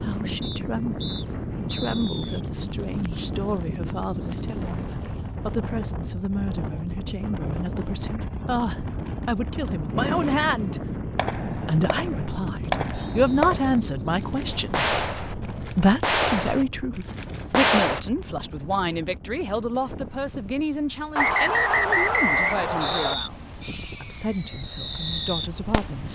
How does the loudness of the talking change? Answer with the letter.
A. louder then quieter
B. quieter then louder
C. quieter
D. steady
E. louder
A.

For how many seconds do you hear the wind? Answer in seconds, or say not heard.
26 s.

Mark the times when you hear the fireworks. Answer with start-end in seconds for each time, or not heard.
9.9-18.0, 22.8-26.1.